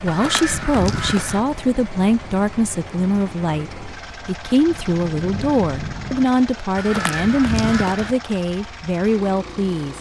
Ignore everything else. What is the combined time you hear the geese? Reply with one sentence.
You can hear the geese for 3 seconds altogether.